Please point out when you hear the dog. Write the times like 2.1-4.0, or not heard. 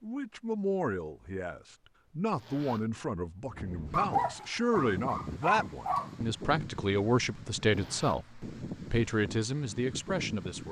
3.9-6.1.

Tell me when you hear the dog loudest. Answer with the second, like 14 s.
4 s.